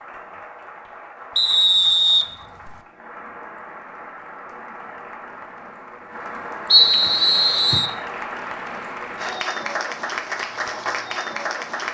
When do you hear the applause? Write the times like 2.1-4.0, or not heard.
0.0-11.8.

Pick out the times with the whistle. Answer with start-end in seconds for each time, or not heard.
1.4-2.8, 6.7-7.9.